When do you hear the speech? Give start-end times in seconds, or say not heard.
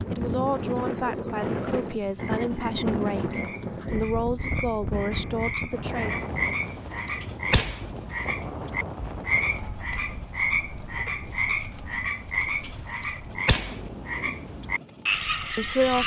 0.1-6.3, 15.6-16.0.